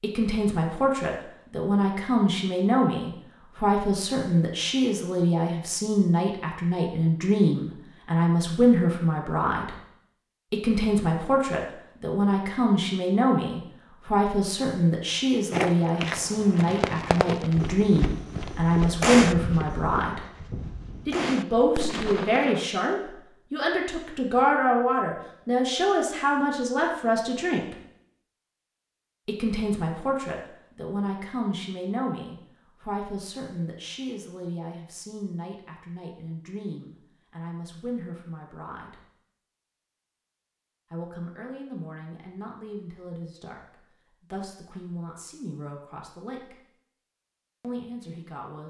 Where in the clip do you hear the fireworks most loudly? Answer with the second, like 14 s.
19 s.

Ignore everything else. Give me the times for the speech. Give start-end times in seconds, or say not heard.
0.0-9.8, 10.5-20.2, 21.1-27.8, 29.2-39.0, 40.9-46.6, 47.6-48.6.